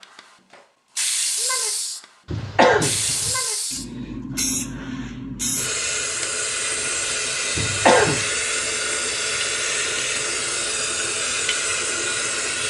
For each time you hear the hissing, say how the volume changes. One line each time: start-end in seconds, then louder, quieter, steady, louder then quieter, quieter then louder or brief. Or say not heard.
0.0-12.6 steady.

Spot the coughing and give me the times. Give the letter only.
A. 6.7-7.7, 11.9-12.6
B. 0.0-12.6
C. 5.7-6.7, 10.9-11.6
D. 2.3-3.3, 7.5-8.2
D.